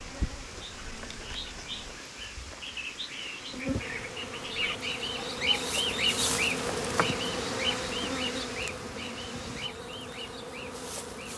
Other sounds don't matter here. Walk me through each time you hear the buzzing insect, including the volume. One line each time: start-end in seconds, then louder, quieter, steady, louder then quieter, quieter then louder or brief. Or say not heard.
0.0-11.3 louder then quieter.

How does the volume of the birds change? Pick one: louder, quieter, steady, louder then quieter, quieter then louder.
louder then quieter.